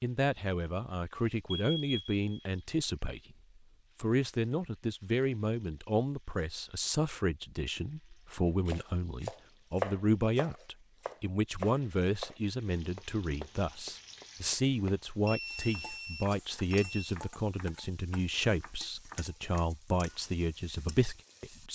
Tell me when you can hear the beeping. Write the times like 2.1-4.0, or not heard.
1.5-2.9, 15.2-17.1.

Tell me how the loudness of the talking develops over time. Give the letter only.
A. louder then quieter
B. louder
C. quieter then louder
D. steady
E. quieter
D.